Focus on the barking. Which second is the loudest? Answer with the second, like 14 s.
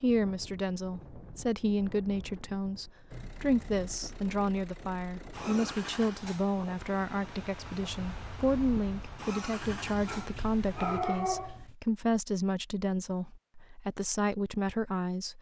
11 s.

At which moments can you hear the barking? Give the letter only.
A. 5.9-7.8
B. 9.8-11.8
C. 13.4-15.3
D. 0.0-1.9
B.